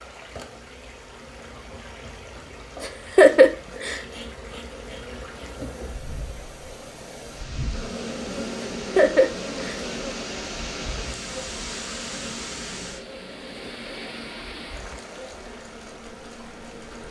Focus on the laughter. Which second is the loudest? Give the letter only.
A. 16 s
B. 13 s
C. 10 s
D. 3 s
D.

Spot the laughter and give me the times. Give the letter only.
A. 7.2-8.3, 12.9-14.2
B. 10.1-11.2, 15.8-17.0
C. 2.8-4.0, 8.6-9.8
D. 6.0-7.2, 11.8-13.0
C.